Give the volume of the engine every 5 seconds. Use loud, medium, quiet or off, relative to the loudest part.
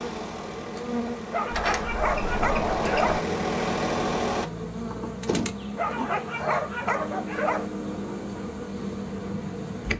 loud, off.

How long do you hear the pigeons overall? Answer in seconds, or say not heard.
not heard.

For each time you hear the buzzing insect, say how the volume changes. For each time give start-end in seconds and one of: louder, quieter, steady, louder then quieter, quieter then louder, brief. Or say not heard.
0.0-9.9 steady.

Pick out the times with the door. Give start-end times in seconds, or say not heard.
1.5-3.2, 5.2-6.1.